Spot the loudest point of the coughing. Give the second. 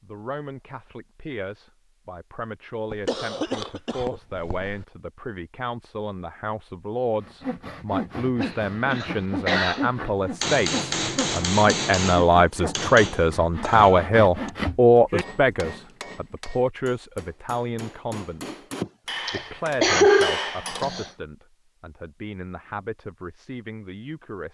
20 s.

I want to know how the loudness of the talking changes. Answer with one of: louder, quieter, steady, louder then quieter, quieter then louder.
louder then quieter.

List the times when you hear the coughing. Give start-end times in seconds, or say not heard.
2.9-4.8, 8.4-9.9, 18.8-21.1.